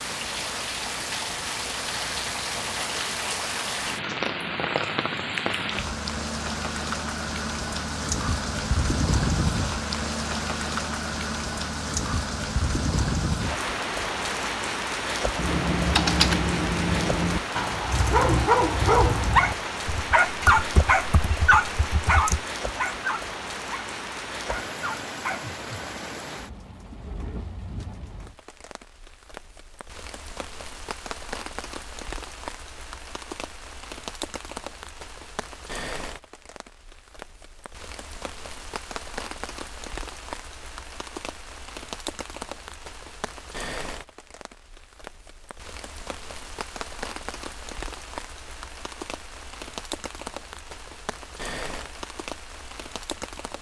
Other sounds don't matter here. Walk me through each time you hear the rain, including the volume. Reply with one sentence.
The rain can be heard from 0.0 to 53.5 s, getting quieter.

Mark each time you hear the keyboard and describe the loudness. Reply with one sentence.
The keyboard can be heard from 15.3 to 22.5 s, getting quieter.